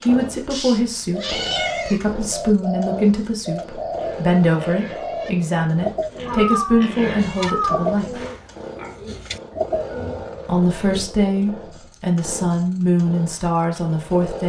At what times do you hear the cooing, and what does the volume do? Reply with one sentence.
The cooing can be heard from 0.9 to 11.1 s, at a steady volume.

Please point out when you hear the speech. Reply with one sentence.
The speech can be heard from 0.0 to 8.2 s and from 10.4 to 14.4 s.